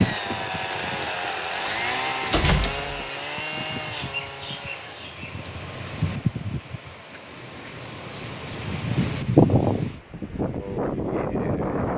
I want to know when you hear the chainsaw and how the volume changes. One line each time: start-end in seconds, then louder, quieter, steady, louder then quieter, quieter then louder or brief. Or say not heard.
0.0-5.2 quieter.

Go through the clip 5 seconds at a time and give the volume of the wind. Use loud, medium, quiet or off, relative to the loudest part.
medium, loud, loud.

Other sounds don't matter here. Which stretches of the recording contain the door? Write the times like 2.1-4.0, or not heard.
1.6-2.9.